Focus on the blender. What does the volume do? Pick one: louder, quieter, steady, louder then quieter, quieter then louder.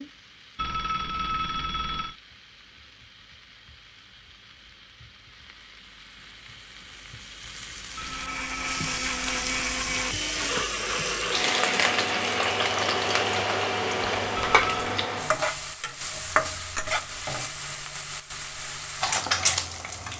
steady.